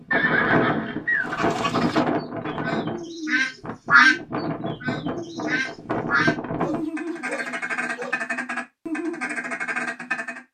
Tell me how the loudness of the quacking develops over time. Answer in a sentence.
The volume of the quacking goes up, then down.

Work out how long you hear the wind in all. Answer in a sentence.
The wind can be heard for 7 seconds in total.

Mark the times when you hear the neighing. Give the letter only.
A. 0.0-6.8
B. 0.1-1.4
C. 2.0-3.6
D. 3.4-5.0
B.